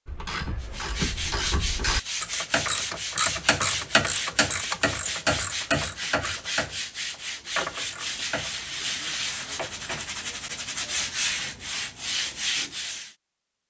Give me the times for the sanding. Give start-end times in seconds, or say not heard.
0.6-13.2.